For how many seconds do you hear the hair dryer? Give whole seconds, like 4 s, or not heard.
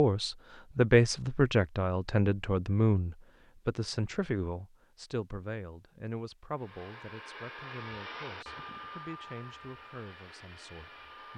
5 s.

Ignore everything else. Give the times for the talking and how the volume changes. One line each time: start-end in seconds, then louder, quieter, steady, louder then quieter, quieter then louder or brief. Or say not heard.
0.0-11.3 quieter.